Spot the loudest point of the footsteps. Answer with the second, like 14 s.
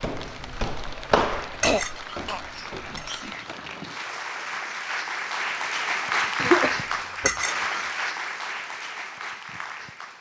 1 s.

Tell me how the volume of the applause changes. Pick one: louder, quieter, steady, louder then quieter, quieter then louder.
louder then quieter.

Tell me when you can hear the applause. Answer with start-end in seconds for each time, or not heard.
0.0-10.1.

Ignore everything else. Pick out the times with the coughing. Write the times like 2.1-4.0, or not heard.
1.5-2.4, 6.3-7.3.